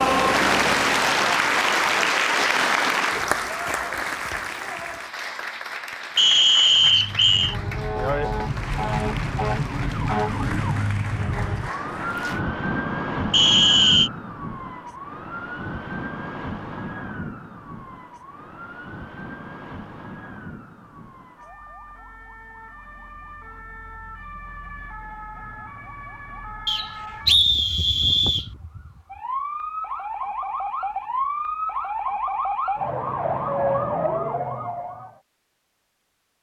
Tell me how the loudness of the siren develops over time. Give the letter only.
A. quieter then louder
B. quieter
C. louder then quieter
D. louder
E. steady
A.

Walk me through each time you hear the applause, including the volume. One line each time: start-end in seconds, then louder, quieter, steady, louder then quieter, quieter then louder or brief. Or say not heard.
0.0-12.4 quieter.